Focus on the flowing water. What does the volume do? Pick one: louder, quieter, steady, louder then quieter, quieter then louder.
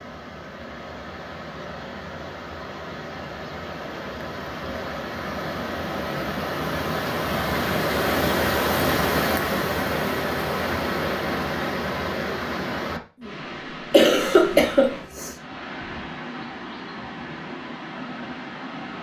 louder then quieter.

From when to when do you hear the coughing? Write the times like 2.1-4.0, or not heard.
13.9-15.3.